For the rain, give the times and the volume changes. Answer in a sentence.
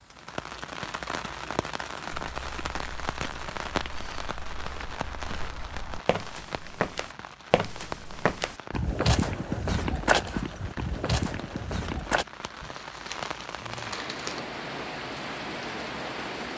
The rain can be heard from 0.0 to 16.5 s, getting quieter then louder.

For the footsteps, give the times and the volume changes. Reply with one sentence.
The footsteps can be heard from 2.4 to 12.2 s, getting louder.